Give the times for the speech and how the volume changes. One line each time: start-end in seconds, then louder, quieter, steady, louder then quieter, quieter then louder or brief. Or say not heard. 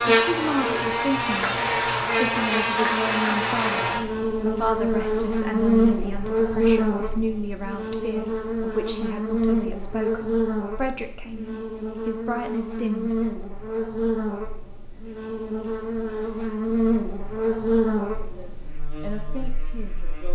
0.2-13.3 steady
18.2-20.3 brief.